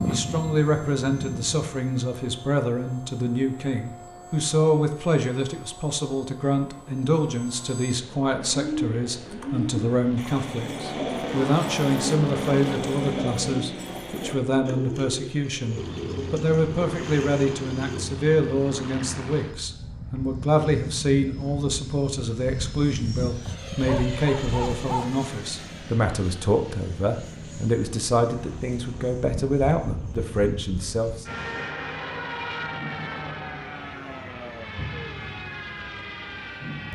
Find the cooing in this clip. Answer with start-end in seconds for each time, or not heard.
8.4-18.1.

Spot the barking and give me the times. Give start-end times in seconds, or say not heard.
23.4-25.2.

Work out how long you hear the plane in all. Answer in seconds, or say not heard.
37 s.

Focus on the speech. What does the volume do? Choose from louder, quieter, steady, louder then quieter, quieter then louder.
steady.